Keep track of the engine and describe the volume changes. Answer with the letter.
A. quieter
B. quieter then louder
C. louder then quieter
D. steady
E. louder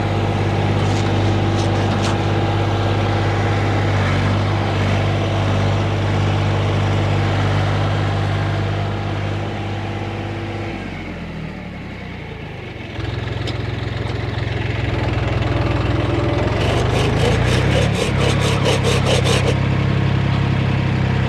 B.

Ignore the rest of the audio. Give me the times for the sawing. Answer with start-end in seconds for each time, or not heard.
0.8-2.3, 16.6-19.6.